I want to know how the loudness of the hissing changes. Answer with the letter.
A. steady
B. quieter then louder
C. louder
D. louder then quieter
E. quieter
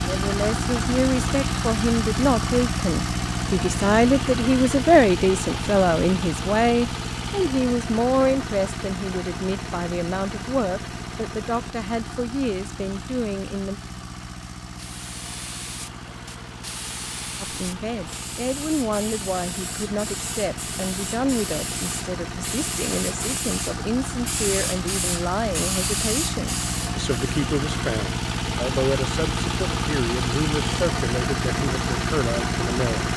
C.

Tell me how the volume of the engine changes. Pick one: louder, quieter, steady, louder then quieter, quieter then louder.
quieter then louder.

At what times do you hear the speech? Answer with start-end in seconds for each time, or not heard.
0.0-13.8, 17.4-33.1.